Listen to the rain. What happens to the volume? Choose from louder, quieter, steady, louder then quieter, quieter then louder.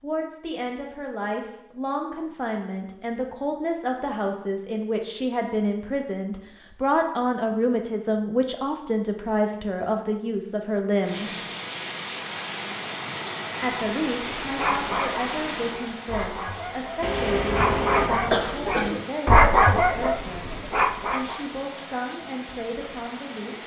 quieter.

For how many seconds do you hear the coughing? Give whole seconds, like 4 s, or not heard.
2 s.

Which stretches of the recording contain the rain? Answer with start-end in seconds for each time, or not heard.
11.0-23.6.